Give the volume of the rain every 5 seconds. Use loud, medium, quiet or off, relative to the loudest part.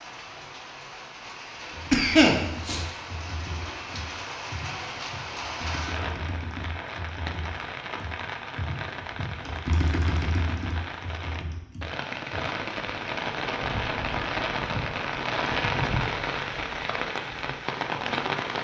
medium, medium, loud, loud.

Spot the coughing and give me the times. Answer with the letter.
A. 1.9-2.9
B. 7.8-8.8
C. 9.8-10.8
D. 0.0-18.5
A.